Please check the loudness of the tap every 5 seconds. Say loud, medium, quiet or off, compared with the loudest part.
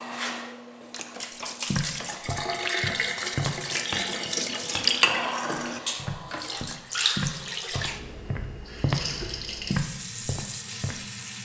loud, loud, medium.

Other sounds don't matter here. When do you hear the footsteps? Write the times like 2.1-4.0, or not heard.
1.6-9.1, 9.7-11.0.